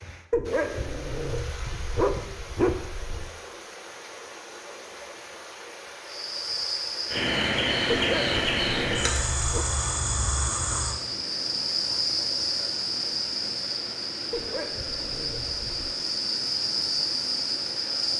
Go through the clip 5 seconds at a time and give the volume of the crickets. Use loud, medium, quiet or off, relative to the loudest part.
off, loud, loud, loud.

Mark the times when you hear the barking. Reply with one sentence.
You can hear the barking from 0.3 to 3.3 s, from 7.9 to 9.7 s and from 14.3 to 15.9 s.